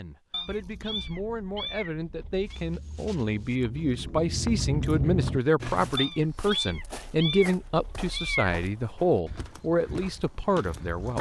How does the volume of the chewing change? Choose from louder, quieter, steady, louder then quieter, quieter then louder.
louder.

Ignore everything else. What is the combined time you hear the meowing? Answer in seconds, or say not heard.
5 s.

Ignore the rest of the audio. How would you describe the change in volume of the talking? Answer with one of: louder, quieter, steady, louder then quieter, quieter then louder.
louder.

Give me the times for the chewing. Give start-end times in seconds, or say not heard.
0.4-6.0.